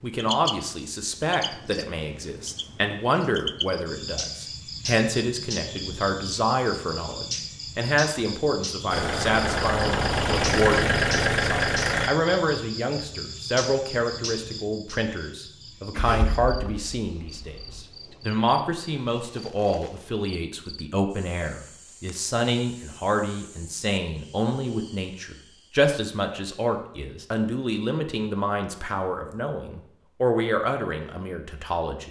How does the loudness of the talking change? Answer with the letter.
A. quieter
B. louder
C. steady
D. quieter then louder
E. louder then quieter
C.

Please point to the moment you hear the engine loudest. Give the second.
11 s.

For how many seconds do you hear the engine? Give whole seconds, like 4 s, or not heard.
5 s.